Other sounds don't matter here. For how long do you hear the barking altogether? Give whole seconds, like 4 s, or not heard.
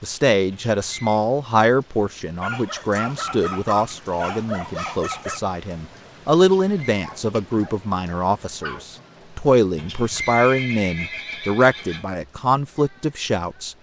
5 s.